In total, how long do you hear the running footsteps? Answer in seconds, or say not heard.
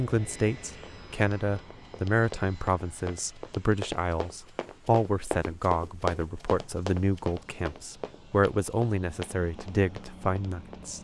10 s.